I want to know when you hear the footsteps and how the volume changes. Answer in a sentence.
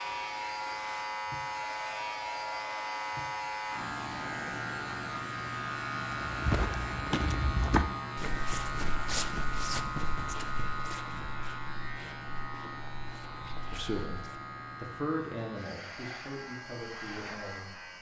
You can hear the footsteps from 6.1 to 14.4 s, getting quieter.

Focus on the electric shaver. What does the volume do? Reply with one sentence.
The loudness of the electric shaver goes down.